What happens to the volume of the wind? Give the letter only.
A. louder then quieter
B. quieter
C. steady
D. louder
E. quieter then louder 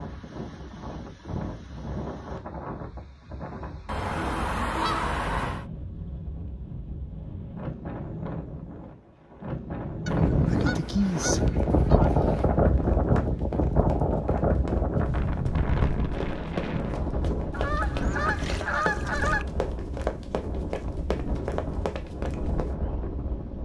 A.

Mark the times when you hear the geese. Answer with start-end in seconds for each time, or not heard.
3.9-5.7, 10.1-12.6, 17.5-19.4.